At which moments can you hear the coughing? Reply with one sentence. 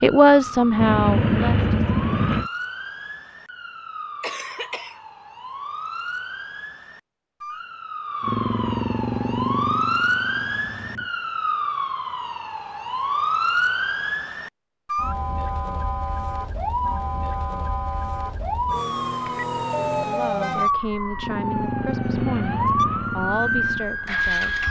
The coughing can be heard from 4.2 to 5.0 s.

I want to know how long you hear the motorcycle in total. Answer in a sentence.
The motorcycle can be heard for 9 seconds in total.